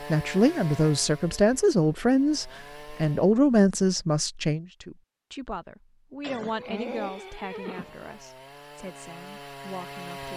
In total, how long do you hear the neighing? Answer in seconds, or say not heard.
2 s.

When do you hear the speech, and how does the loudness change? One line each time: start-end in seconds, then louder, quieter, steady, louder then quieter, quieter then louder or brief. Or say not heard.
0.1-10.3 quieter.